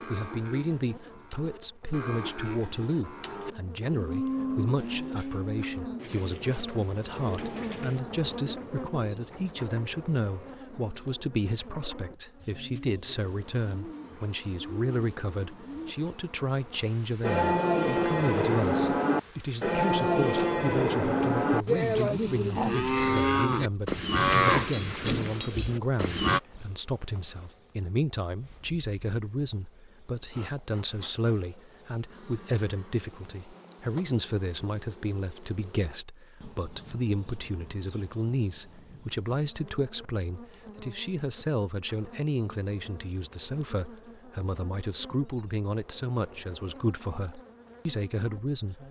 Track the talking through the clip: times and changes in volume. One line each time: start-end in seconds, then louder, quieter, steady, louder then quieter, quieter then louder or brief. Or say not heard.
0.1-48.8 steady.